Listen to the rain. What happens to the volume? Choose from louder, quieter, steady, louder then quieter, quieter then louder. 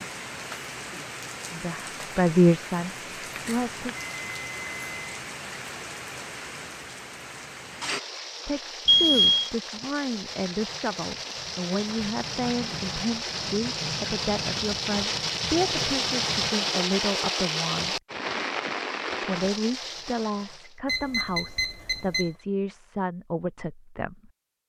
louder.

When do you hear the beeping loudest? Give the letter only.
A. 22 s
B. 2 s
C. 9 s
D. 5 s
C.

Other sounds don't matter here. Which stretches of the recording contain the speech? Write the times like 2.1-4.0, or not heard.
1.5-4.0, 8.4-18.0, 19.2-24.3.